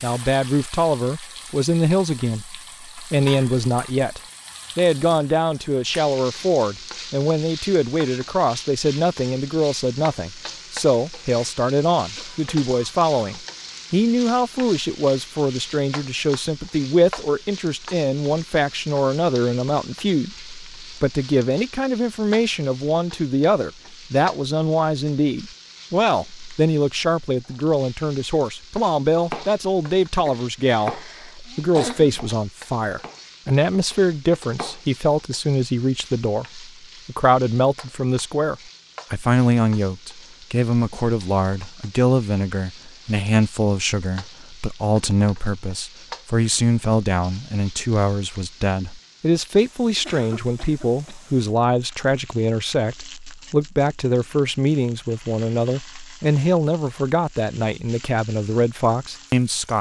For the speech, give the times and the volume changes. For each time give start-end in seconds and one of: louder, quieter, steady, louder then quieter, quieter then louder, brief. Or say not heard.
0.0-59.7 steady.